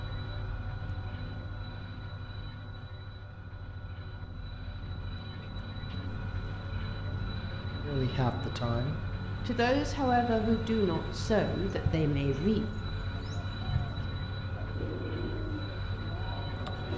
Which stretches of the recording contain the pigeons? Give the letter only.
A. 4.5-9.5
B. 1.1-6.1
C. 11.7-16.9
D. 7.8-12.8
C.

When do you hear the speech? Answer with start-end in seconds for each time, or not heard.
7.8-12.8.